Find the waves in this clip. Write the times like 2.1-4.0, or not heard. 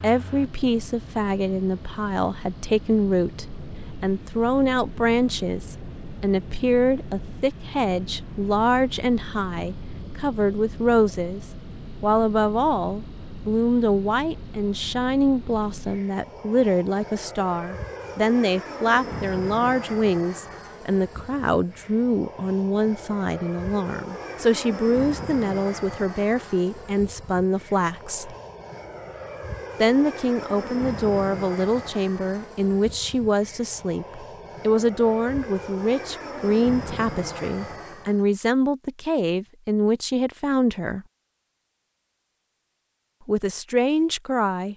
not heard.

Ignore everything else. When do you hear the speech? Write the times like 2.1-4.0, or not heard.
0.0-11.4, 12.0-28.4, 29.8-41.0, 43.2-44.7.